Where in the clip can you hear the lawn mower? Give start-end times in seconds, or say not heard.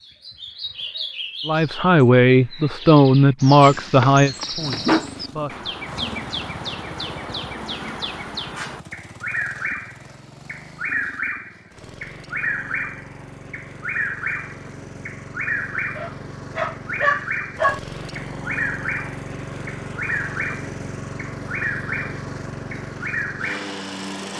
4.5-24.3.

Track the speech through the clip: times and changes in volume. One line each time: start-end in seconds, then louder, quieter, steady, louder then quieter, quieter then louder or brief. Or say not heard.
1.4-5.7 quieter.